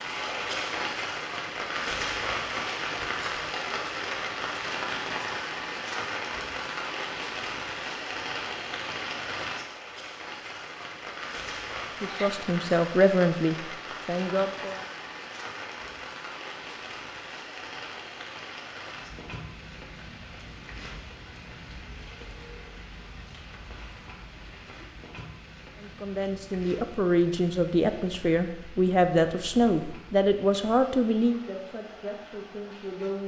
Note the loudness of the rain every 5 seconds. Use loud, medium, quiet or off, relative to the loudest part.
loud, loud, medium, medium, quiet, quiet, quiet.